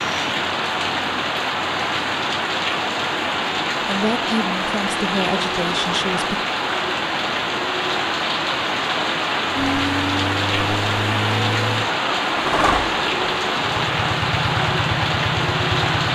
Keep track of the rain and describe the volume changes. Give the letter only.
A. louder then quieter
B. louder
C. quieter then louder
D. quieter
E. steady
E.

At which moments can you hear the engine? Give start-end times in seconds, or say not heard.
9.6-16.0.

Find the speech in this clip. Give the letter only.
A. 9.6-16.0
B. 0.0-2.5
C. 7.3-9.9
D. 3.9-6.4
D.